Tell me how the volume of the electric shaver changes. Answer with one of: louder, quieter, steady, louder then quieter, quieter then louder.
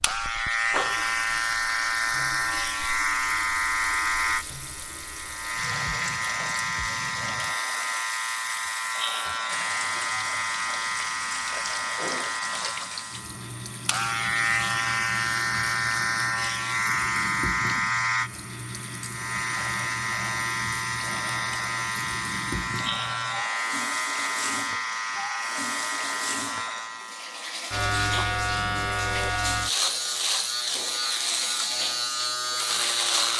steady.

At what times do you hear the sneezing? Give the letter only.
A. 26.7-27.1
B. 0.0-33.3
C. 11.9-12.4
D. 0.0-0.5
C.